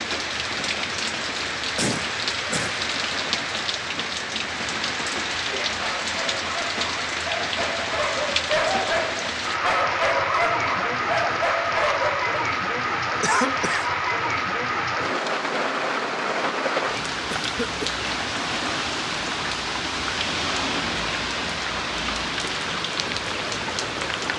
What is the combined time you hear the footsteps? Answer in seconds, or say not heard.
not heard.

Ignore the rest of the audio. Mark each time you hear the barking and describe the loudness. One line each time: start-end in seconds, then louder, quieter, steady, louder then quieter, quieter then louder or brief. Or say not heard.
5.5-12.2 louder.